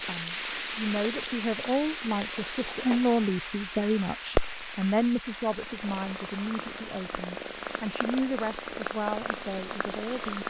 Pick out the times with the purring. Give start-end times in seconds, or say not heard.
0.0-10.4.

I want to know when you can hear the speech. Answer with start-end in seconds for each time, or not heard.
0.0-10.4.